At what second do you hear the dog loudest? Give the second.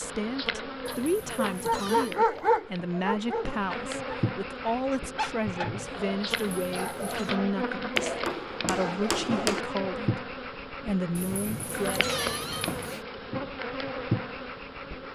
2 s.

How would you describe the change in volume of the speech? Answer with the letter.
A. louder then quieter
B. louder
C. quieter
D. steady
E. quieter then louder
D.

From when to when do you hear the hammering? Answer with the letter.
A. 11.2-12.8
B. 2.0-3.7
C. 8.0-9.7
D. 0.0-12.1
C.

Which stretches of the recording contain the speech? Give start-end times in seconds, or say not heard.
0.0-12.1.